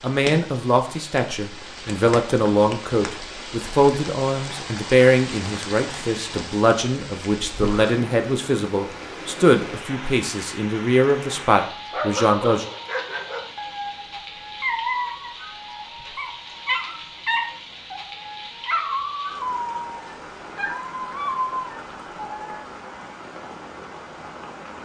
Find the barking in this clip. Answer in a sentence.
You can hear the barking from 11.2 to 22.6 s.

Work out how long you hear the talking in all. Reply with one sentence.
The talking can be heard for 13 seconds in total.